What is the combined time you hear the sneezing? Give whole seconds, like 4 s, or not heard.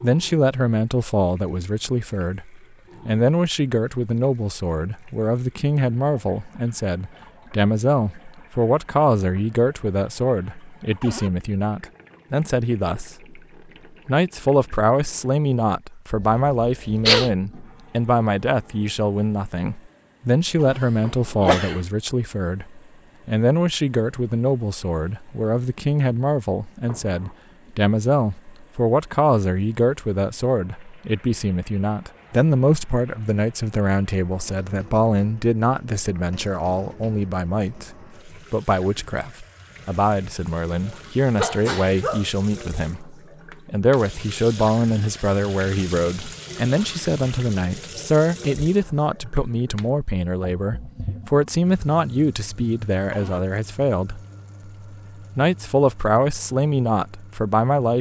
3 s.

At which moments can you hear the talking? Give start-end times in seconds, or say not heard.
0.0-13.3, 14.1-54.2, 55.4-57.9.